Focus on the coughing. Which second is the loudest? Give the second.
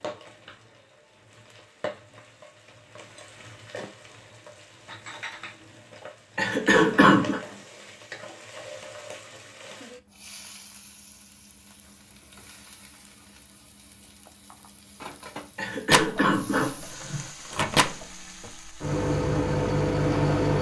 7 s.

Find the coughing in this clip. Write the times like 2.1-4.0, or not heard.
6.3-7.4, 15.6-17.3.